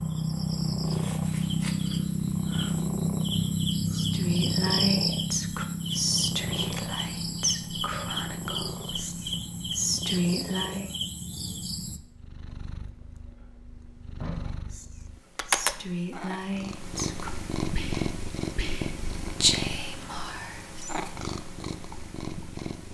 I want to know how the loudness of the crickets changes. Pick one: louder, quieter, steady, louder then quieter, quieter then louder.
quieter.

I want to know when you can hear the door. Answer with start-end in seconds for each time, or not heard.
13.0-14.6.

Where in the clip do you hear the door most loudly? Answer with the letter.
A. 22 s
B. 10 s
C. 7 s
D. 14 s
D.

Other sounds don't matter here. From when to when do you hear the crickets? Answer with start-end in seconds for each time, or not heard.
0.0-12.0.